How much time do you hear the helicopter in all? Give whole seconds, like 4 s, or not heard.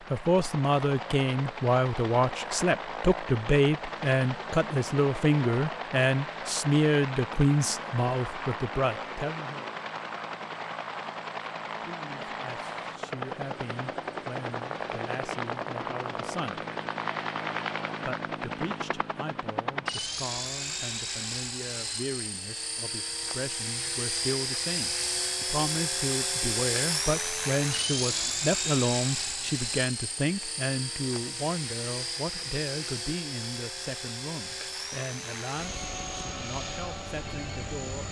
38 s.